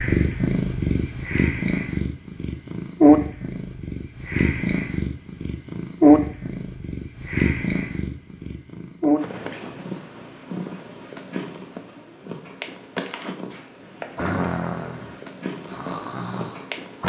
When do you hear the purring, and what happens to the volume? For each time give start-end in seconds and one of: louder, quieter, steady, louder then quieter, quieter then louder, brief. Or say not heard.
0.0-17.0 quieter.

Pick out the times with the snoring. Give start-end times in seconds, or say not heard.
14.2-17.0.